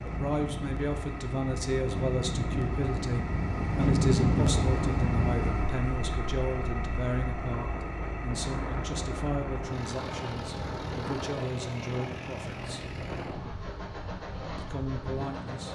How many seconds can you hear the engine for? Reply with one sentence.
You can hear the engine for 16 seconds altogether.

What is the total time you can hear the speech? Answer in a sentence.
The speech can be heard for 14 seconds in total.